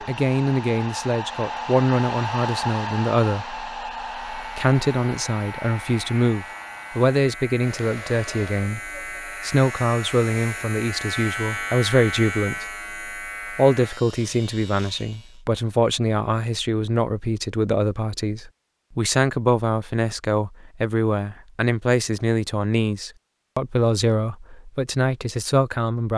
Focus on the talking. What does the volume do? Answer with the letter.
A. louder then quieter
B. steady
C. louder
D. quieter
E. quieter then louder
B.